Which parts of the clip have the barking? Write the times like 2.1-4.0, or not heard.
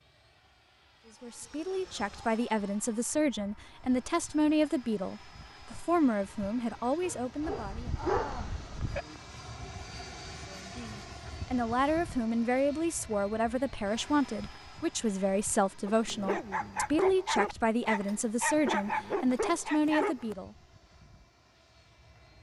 7.0-9.1, 15.8-20.4.